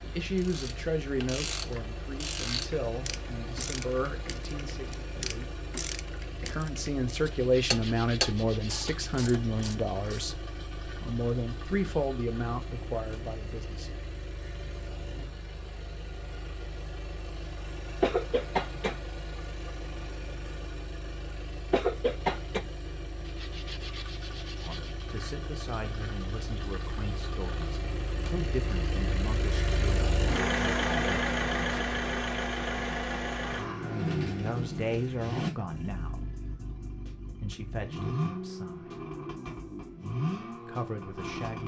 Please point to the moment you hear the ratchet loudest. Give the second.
8 s.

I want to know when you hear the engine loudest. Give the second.
31 s.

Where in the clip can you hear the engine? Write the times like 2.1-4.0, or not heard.
0.0-41.6.